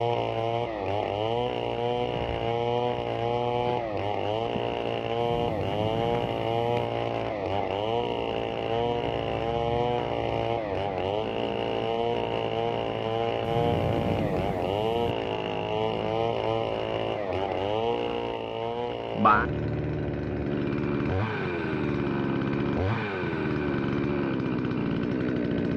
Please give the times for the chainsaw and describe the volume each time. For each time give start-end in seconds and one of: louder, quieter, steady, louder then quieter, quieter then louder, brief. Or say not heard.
0.0-25.7 steady.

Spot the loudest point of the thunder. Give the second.
14 s.